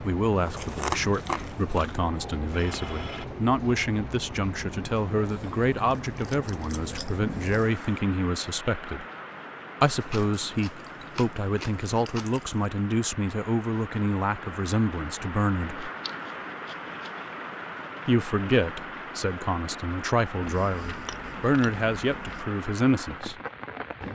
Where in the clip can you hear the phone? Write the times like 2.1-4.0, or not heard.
2.5-3.2.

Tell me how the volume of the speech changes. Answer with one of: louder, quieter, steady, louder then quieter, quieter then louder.
steady.